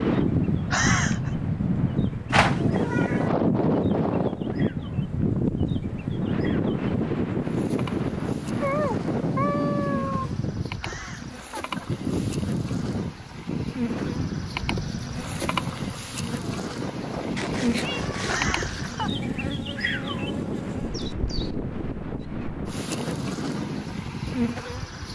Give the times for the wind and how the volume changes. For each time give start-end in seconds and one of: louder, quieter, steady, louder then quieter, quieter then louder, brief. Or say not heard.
0.0-25.0 quieter.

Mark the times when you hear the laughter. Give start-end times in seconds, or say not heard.
0.7-1.3, 10.8-11.9, 18.2-19.1.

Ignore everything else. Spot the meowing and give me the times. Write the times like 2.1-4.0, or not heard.
2.3-3.3, 8.6-10.3, 17.4-18.9.